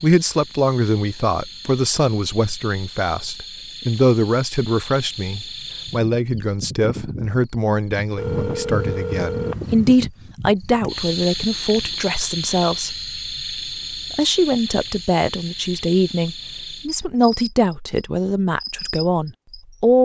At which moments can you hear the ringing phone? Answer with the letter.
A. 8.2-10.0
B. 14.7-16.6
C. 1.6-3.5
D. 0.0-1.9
A.